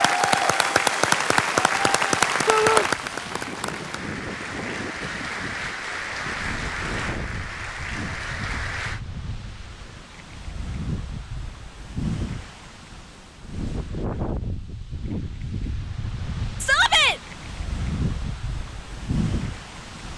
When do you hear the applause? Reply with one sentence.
You can hear the applause from 0.0 to 9.0 s.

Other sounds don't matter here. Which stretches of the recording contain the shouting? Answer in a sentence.
The shouting can be heard from 2.5 to 2.9 s and from 16.6 to 17.2 s.